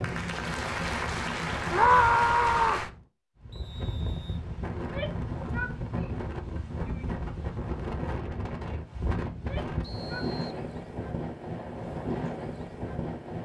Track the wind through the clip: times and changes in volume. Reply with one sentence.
You can hear the wind from 0.0 to 13.4 s, at a steady volume.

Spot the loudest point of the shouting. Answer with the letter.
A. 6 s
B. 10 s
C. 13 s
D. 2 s
D.